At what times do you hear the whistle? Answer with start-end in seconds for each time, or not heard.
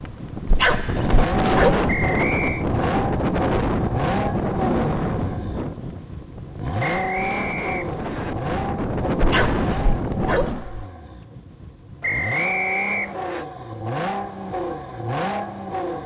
1.9-2.6, 6.8-8.3, 12.0-13.4.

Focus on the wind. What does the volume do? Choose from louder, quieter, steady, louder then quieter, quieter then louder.
quieter then louder.